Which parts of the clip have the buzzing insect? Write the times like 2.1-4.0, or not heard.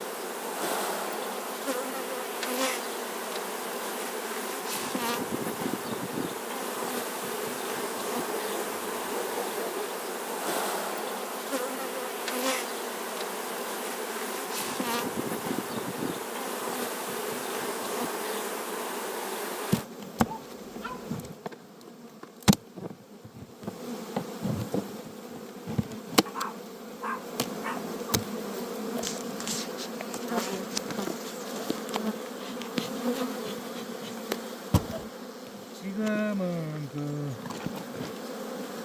0.0-38.8.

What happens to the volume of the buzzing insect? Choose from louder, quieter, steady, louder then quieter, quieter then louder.
steady.